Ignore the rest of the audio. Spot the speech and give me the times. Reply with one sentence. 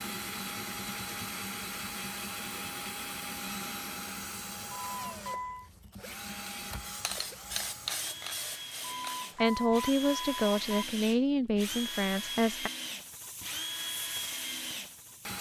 You can hear the speech from 9.4 to 12.7 s.